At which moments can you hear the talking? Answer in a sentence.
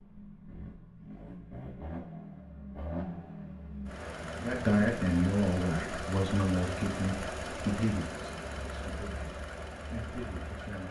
The talking can be heard from 4.4 to 10.8 s.